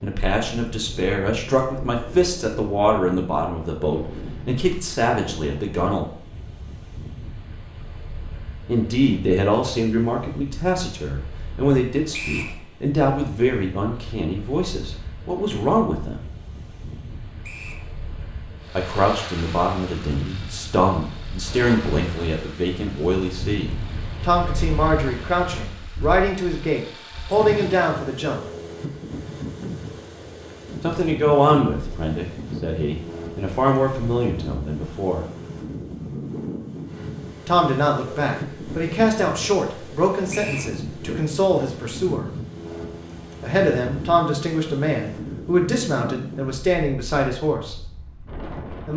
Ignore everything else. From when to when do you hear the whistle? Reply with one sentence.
The whistle can be heard from 12.1 to 12.6 s, from 17.4 to 17.9 s and from 40.3 to 40.7 s.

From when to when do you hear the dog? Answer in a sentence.
The dog can't be heard in this clip.